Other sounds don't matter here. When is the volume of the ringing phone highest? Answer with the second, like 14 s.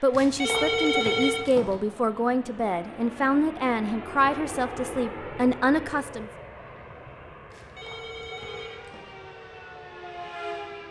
1 s.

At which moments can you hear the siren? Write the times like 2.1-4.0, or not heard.
8.3-10.8.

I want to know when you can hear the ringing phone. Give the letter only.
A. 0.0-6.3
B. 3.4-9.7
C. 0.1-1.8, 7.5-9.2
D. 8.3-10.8
C.